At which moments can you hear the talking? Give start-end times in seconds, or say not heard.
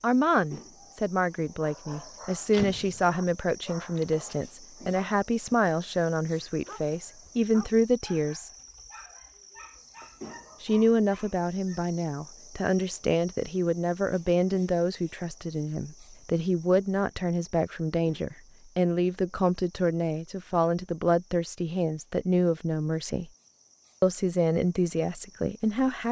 0.0-8.5, 10.6-23.3, 24.0-26.0.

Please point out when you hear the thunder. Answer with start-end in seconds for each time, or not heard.
not heard.